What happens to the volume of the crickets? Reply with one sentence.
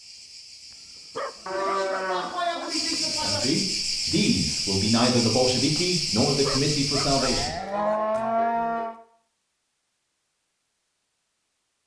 The loudness of the crickets goes up.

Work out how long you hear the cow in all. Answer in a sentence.
You can hear the cow for 4 seconds altogether.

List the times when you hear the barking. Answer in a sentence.
The barking can be heard from 1.1 to 2.7 s and from 6.4 to 8.0 s.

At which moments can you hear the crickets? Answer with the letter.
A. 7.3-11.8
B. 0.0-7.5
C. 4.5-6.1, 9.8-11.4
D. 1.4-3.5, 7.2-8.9
B.